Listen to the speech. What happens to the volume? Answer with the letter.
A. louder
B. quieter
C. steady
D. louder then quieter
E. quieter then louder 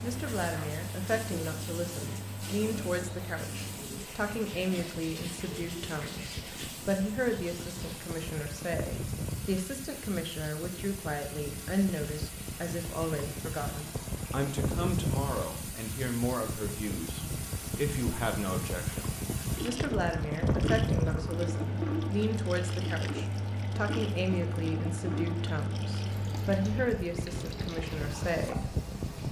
C.